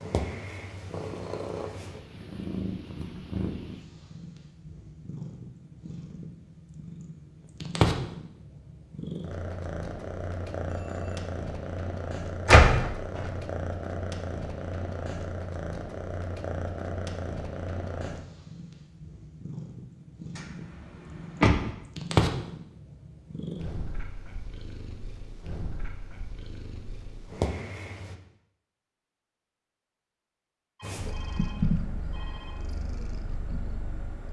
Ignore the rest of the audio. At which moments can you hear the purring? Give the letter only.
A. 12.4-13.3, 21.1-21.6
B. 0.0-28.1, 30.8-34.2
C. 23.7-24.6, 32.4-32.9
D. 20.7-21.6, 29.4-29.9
B.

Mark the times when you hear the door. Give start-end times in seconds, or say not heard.
12.4-13.3, 21.1-21.6.